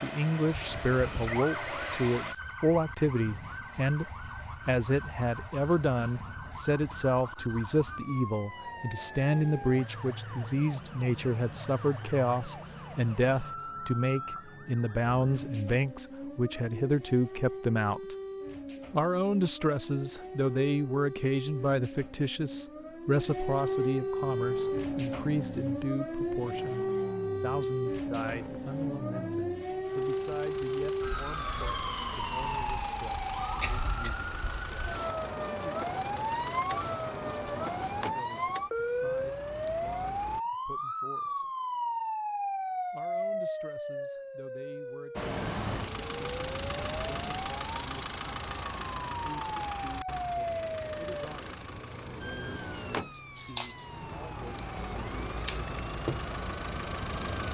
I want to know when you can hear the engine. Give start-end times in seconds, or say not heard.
0.0-2.4, 24.2-40.5, 45.1-57.5.